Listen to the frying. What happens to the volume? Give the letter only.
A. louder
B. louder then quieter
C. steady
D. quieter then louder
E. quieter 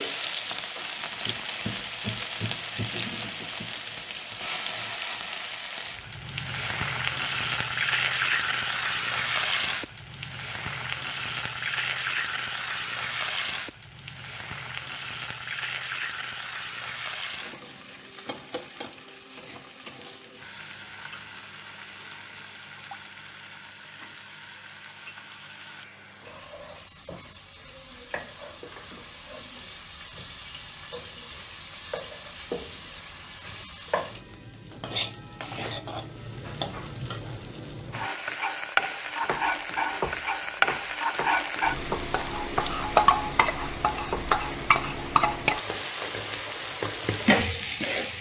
D.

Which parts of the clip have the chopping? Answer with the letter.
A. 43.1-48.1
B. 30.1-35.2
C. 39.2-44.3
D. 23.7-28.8
C.